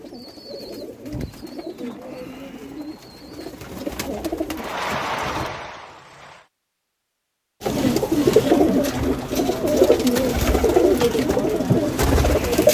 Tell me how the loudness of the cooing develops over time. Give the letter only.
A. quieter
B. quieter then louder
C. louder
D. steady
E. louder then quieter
C.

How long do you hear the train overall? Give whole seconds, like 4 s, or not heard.
2 s.